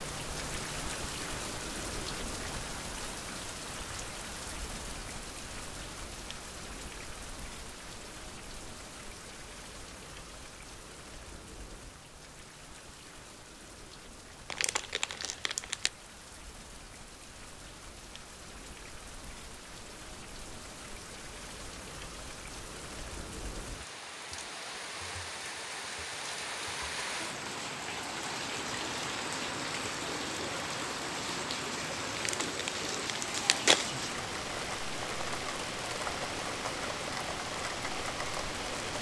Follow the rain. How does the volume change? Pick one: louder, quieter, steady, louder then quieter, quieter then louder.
quieter then louder.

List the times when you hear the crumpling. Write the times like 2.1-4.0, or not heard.
14.5-15.9, 32.1-33.9.